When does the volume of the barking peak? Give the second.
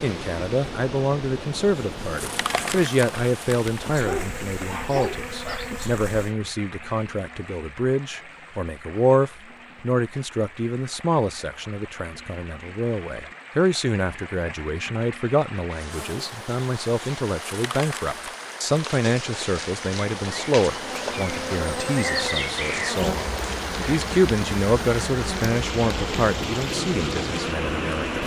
4 s.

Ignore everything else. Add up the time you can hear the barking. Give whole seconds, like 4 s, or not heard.
2 s.